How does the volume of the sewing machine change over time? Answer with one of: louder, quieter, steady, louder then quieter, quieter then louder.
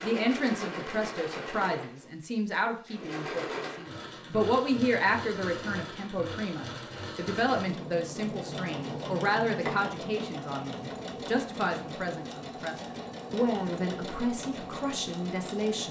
steady.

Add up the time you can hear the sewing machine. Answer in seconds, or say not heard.
16 s.